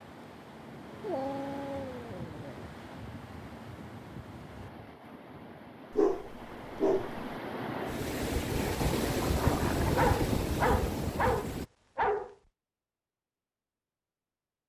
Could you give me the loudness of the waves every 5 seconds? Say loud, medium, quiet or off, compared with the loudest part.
quiet, loud, loud.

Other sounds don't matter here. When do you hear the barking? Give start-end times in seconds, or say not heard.
1.0-2.7, 5.9-7.3, 9.8-12.3.